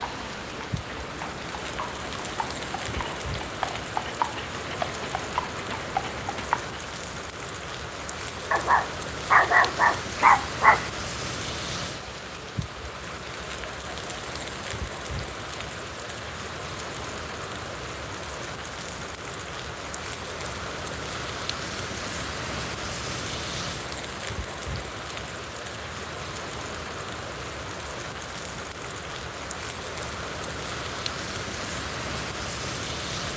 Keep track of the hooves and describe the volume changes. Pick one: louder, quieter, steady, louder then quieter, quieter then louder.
louder.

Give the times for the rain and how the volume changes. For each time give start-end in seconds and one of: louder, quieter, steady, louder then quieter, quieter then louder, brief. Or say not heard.
0.0-33.3 steady.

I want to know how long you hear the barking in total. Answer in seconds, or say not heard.
2 s.